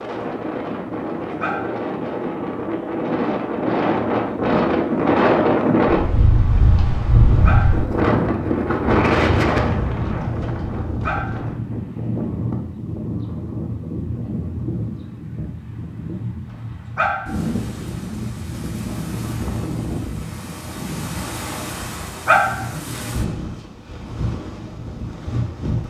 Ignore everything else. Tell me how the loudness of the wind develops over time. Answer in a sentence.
The loudness of the wind goes down.